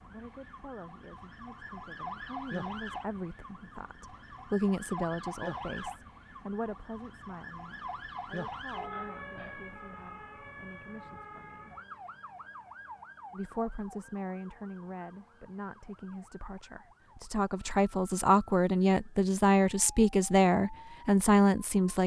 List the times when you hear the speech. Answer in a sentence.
The speech can be heard from 0.1 to 11.8 s and from 13.3 to 22.0 s.